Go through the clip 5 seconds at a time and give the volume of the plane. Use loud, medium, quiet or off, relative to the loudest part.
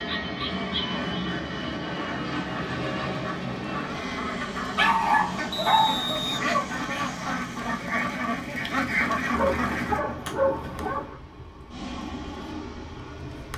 loud, medium, medium.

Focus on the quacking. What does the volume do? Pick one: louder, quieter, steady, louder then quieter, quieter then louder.
louder.